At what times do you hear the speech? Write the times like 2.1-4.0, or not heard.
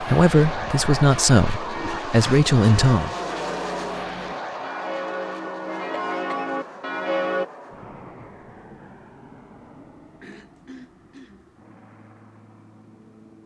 0.0-3.1.